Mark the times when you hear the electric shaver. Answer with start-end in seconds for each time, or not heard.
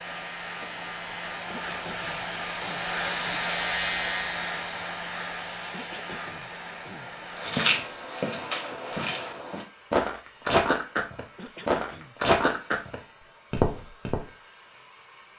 0.0-6.3.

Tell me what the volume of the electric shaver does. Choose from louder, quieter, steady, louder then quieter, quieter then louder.
louder then quieter.